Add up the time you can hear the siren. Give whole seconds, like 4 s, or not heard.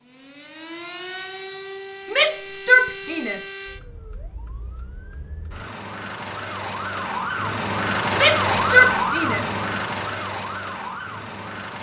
12 s.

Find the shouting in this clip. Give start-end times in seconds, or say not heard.
2.0-3.5, 8.1-9.4.